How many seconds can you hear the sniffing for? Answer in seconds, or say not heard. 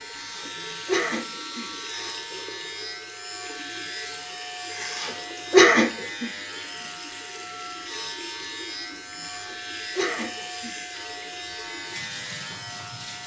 5 s.